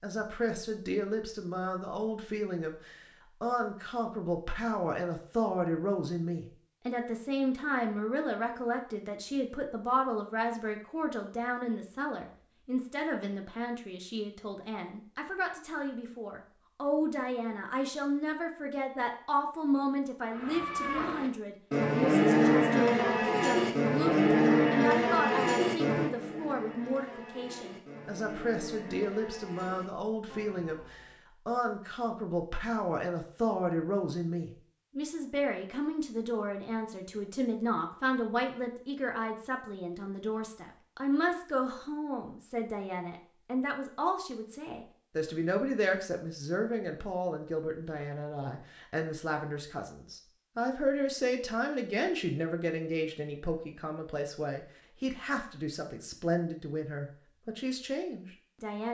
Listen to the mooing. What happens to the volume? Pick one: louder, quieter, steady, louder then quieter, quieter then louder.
quieter.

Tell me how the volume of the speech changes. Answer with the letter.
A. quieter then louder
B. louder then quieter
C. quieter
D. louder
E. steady
E.